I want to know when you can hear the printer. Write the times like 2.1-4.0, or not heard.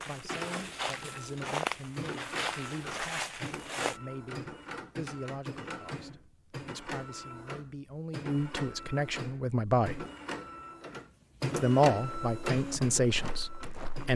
0.1-14.1.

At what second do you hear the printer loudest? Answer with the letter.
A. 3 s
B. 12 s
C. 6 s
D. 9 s
B.